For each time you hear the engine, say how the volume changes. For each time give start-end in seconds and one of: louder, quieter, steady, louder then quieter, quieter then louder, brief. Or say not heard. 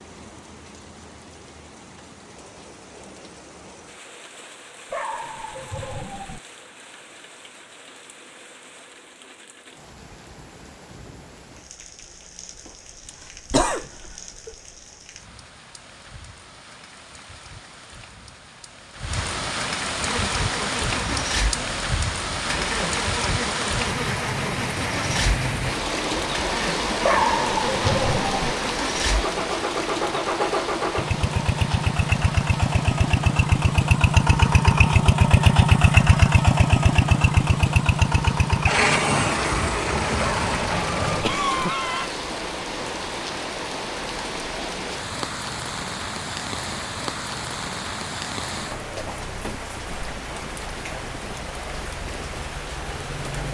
20.0-41.2 louder.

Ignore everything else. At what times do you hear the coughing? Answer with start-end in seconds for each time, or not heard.
12.7-14.6, 41.2-42.1.